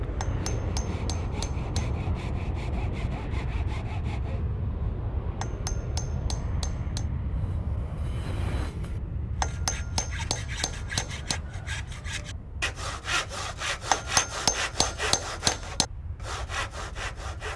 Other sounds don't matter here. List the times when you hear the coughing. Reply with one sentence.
You can't hear the coughing here.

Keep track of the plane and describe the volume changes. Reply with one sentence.
The volume of the plane goes down.